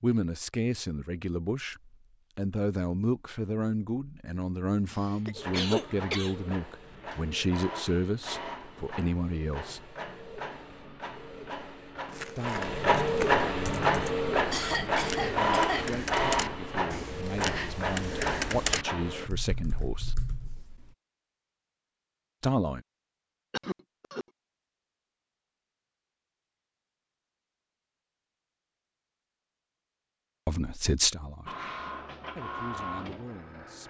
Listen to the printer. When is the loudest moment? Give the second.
13 s.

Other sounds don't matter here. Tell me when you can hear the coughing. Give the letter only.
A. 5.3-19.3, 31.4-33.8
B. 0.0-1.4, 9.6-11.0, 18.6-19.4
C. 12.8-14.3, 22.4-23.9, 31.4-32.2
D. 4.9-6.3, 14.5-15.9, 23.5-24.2
D.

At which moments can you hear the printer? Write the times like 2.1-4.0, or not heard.
5.3-19.3, 31.4-33.8.